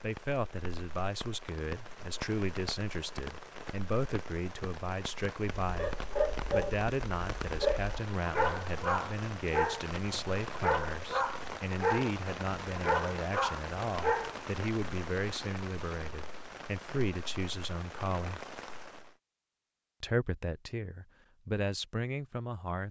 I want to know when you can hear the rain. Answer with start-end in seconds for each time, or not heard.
0.0-19.1.